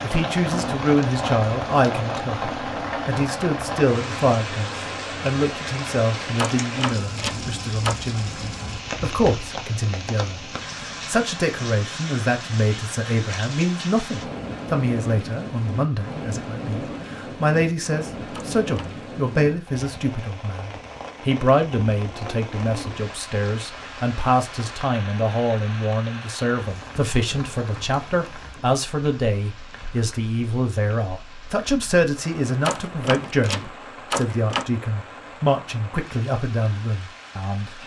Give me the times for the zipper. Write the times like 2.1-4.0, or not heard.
not heard.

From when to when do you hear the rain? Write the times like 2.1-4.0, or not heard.
0.0-37.8.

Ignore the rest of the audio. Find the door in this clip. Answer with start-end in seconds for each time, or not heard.
6.3-8.0, 18.3-19.0, 32.6-34.6.